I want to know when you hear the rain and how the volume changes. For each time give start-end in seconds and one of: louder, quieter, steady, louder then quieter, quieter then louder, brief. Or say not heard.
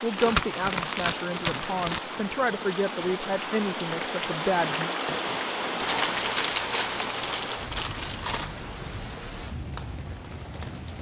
0.0-10.9 louder then quieter.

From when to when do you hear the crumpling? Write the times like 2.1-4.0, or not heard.
0.1-2.0, 5.8-8.6.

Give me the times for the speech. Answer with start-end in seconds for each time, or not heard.
0.0-5.0.